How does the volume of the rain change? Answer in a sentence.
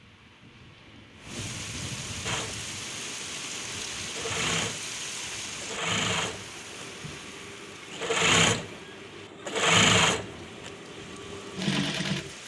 The loudness of the rain goes down.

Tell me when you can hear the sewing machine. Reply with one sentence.
You can hear the sewing machine from 2.2 to 12.3 s.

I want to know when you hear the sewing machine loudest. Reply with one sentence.
The volume of the sewing machine peaks at 10 seconds.